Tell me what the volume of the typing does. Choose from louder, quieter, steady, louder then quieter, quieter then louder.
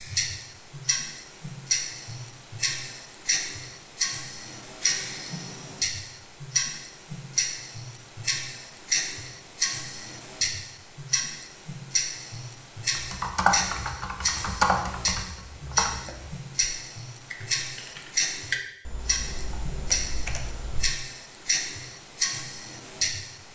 quieter.